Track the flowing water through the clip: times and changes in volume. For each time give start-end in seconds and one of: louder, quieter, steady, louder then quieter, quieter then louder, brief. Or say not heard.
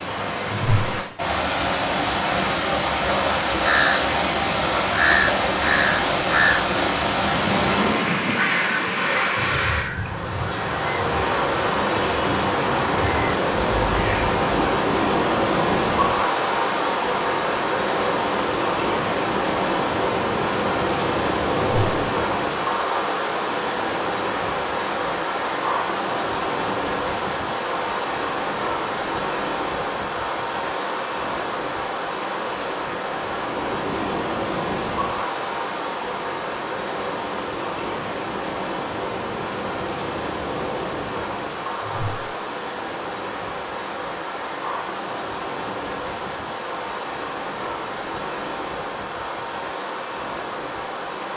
0.0-51.3 quieter.